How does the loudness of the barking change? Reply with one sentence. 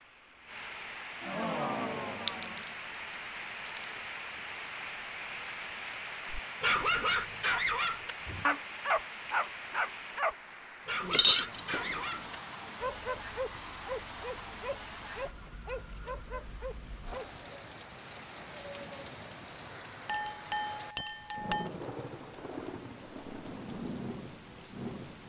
The loudness of the barking goes down.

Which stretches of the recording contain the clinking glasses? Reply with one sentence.
The clinking glasses can be heard from 2.2 to 4.0 s, from 11.0 to 12.0 s and from 20.1 to 21.7 s.